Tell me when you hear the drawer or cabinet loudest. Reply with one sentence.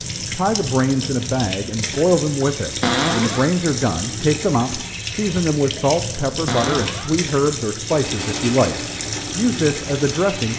The loudest moment of the drawer or cabinet is at 3 seconds.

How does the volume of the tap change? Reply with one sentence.
The loudness of the tap stays about the same.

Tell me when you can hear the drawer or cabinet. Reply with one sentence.
The drawer or cabinet can be heard from 2.8 to 3.5 s and from 6.5 to 7.2 s.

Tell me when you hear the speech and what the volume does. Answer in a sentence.
The speech can be heard from 0.3 to 10.5 s, at a steady volume.